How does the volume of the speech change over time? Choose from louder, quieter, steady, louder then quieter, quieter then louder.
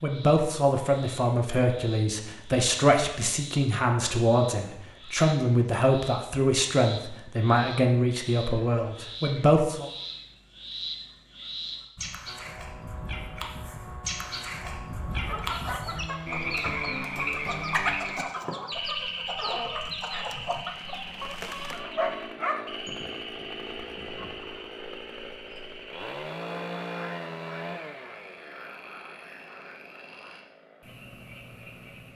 steady.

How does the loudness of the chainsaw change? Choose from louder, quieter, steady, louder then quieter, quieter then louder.
louder then quieter.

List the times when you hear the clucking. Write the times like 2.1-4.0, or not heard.
15.1-24.6.